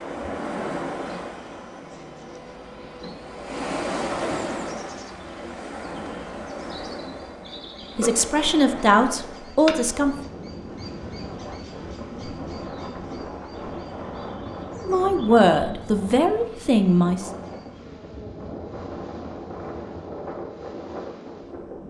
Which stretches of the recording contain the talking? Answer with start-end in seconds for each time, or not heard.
8.0-10.2, 14.8-17.3.